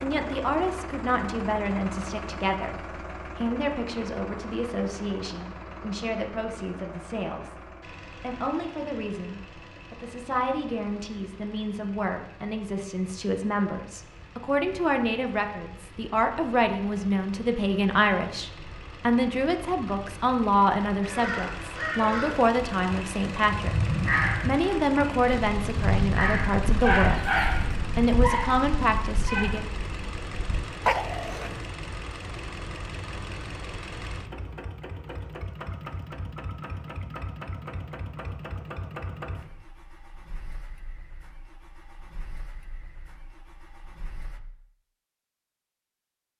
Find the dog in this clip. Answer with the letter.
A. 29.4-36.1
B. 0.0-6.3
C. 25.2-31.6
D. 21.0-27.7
C.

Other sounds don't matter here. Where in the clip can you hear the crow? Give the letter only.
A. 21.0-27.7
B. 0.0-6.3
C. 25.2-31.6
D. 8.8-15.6
A.